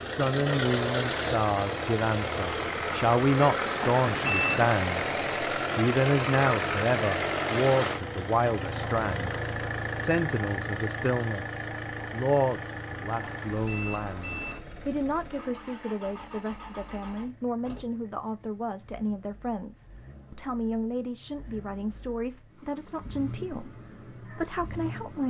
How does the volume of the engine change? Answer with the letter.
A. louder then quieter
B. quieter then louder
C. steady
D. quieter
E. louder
D.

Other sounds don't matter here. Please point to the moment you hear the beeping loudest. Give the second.
4 s.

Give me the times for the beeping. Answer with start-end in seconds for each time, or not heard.
3.8-4.8, 13.2-14.6.